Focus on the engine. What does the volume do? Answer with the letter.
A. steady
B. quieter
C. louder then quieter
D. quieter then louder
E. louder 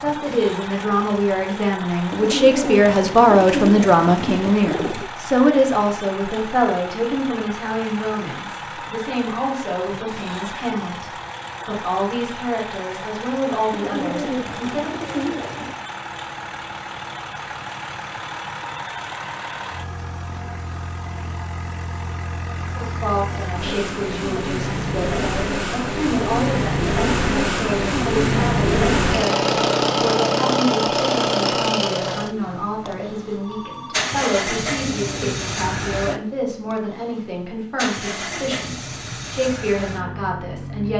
C.